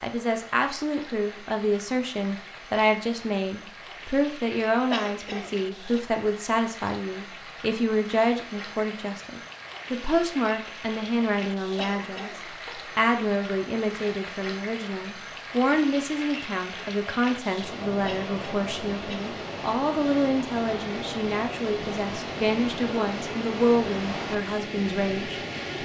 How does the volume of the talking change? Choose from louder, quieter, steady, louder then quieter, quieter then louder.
steady.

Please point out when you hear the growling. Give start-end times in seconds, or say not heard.
not heard.